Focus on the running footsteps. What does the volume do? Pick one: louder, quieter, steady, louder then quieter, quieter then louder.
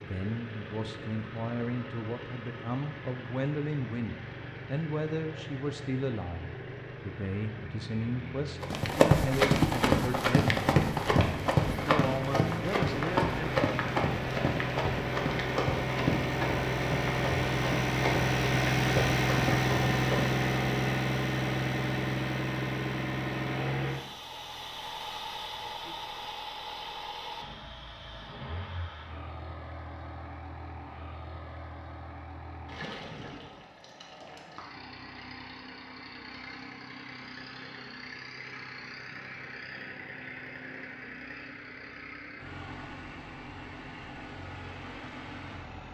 quieter.